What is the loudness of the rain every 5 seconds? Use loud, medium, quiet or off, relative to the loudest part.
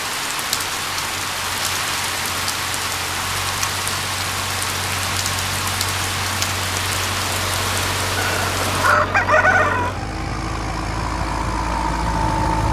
loud, loud, off.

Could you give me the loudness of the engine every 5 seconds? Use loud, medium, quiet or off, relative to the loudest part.
quiet, medium, loud.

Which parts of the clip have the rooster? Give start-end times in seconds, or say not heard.
8.2-9.9.